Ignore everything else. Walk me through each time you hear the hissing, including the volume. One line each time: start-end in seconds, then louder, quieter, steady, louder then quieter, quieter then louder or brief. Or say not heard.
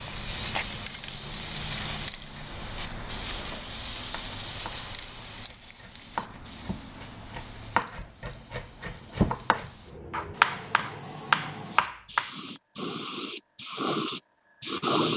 0.0-15.1 quieter then louder.